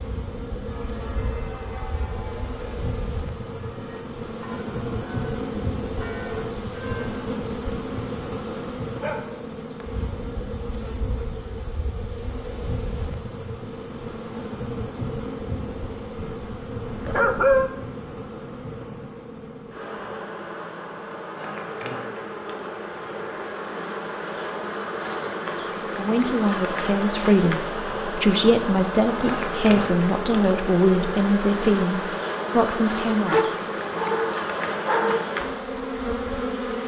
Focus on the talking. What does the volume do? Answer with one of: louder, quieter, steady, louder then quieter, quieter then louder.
steady.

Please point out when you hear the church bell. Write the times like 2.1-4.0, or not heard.
0.7-7.1.